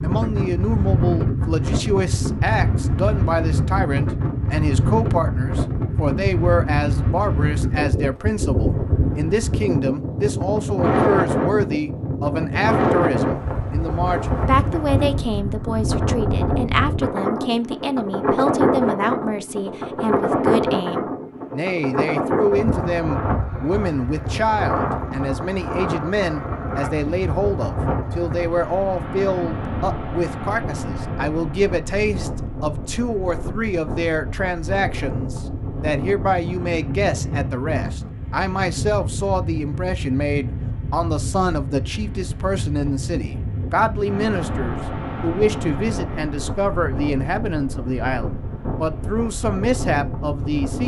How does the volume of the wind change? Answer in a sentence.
The volume of the wind goes down.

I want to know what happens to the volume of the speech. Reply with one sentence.
The loudness of the speech stays about the same.